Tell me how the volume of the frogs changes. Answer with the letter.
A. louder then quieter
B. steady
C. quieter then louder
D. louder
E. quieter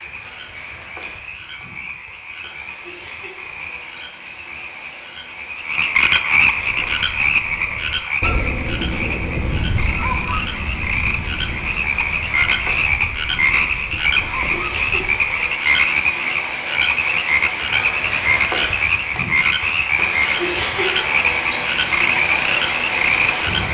D.